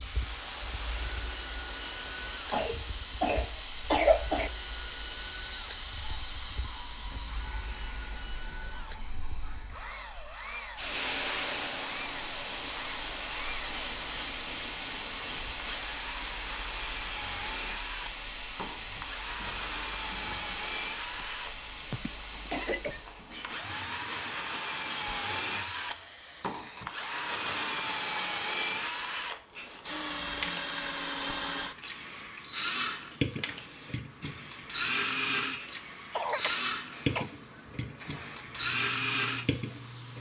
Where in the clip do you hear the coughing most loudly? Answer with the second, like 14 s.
4 s.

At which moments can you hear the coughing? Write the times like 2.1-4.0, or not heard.
2.5-4.5, 21.9-23.1, 36.1-37.2.